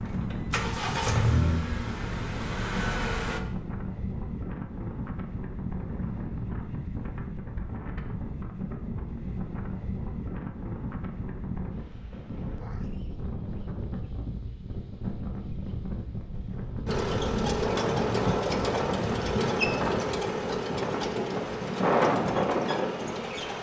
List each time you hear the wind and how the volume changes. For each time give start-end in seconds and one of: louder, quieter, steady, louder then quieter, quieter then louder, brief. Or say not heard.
0.0-23.5 louder.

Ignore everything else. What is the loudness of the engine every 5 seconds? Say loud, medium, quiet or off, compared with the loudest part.
loud, off, off, loud, medium.